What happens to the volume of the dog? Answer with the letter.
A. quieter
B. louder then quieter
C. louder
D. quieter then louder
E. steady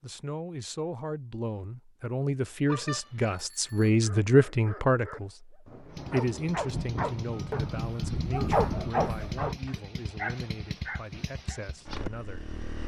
B.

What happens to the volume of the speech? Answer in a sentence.
The volume of the speech goes up, then down.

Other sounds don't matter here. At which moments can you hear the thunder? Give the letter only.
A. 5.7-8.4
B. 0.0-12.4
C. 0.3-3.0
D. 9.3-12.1
A.